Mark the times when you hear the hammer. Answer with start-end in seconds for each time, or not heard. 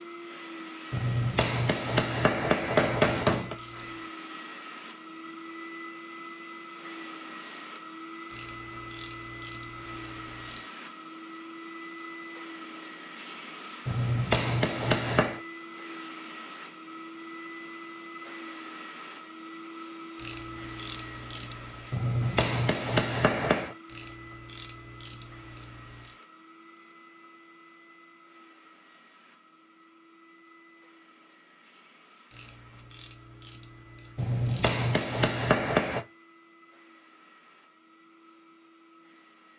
0.9-3.5, 13.8-15.4, 21.9-23.8, 34.1-36.0.